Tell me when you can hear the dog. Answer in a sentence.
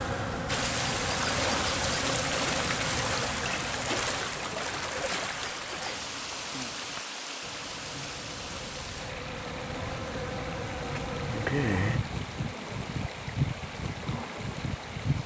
You can't hear the dog here.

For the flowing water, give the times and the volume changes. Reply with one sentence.
The flowing water can be heard from 0.0 to 15.2 s, getting quieter.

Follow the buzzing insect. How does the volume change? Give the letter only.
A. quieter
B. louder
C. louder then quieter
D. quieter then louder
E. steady
D.